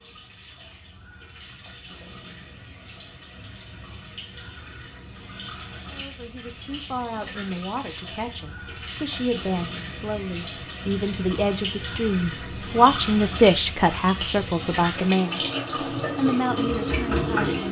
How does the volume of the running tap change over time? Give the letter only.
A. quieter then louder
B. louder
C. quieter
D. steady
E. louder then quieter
B.